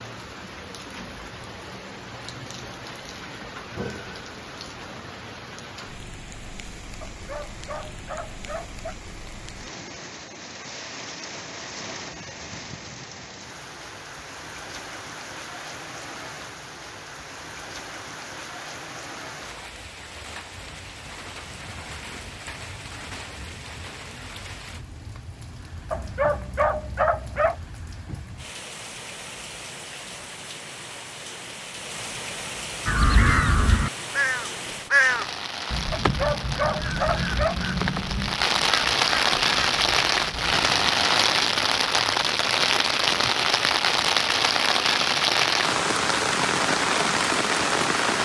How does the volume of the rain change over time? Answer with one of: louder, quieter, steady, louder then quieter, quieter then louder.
louder.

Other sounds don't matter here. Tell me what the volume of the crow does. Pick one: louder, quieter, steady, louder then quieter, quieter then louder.
quieter.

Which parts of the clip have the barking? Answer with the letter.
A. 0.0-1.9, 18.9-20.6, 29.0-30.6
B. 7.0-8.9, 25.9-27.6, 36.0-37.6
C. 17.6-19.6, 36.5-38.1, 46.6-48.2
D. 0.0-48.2
B.